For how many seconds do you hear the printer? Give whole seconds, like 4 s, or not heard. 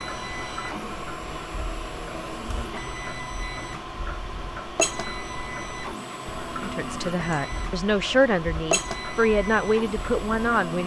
11 s.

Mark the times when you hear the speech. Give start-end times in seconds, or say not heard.
6.6-10.8.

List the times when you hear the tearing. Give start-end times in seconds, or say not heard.
not heard.